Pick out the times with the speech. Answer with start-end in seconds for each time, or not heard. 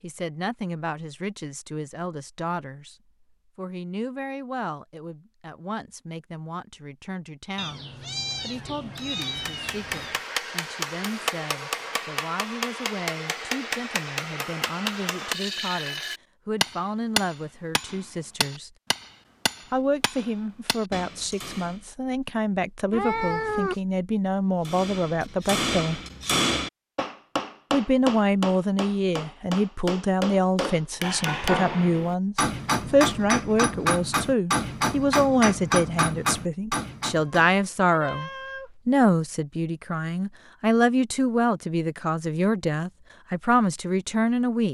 0.0-3.0, 3.5-18.7, 19.7-26.0, 27.7-44.6.